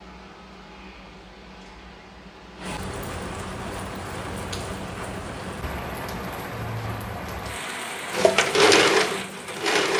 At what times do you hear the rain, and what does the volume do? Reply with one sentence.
You can hear the rain from 0.0 to 9.8 s, getting louder.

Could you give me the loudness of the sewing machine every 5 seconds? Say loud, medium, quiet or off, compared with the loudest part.
off, loud.